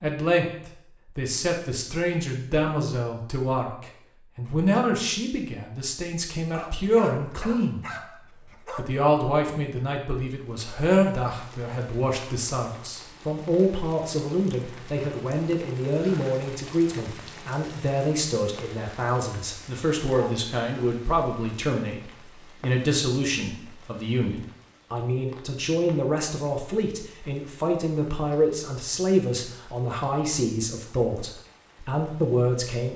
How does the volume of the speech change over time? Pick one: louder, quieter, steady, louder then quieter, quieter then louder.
steady.